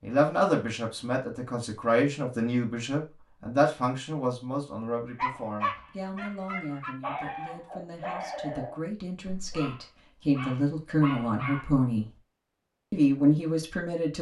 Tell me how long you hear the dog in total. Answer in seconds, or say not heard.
7 s.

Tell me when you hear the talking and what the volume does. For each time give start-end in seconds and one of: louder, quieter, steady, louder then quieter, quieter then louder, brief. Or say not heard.
0.0-12.1 quieter then louder
12.9-14.1 brief.